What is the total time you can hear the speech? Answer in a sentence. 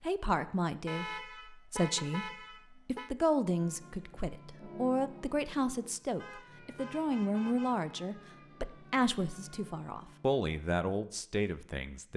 You can hear the speech for 12 seconds altogether.